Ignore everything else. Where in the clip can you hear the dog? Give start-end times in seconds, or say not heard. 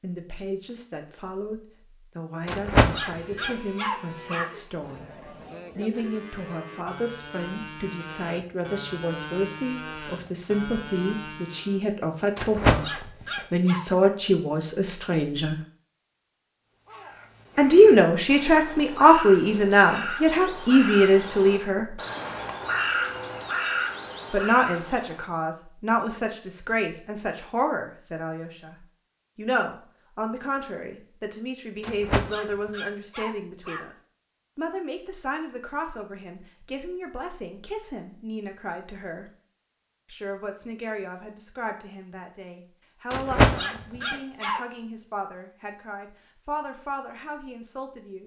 2.5-4.5, 12.3-13.8, 31.8-33.9, 43.1-44.6.